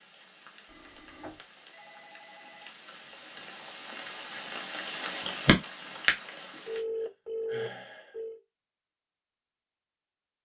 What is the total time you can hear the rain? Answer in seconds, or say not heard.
7 s.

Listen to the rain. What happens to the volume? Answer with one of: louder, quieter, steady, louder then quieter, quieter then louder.
louder.